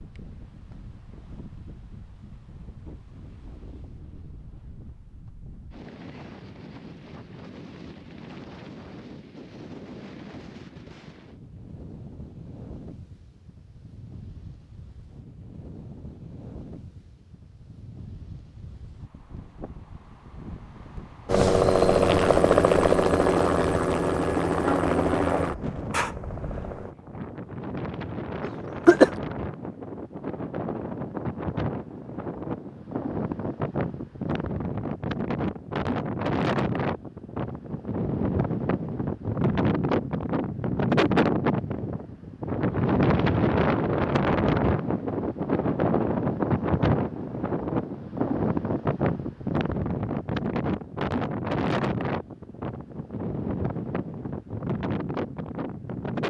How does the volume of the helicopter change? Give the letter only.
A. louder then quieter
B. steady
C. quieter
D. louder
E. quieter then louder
C.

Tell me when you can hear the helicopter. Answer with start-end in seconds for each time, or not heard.
21.2-26.9.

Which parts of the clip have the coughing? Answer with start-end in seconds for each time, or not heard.
28.4-29.1.